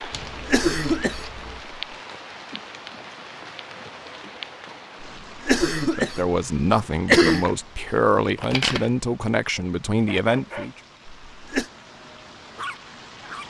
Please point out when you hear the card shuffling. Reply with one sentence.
The card shuffling can be heard from 0.1 to 1.6 s and from 7.3 to 9.1 s.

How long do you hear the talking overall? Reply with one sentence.
You can hear the talking for 5 seconds altogether.